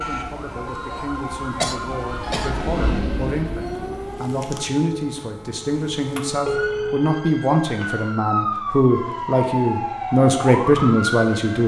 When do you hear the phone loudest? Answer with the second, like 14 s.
7 s.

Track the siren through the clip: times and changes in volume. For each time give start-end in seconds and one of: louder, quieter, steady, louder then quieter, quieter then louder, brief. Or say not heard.
0.0-11.6 louder.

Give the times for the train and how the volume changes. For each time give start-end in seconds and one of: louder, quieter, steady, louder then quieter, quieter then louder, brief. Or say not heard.
0.0-4.3 louder then quieter.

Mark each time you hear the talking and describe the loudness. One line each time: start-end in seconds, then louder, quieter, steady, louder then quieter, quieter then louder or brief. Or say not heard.
0.0-11.6 louder.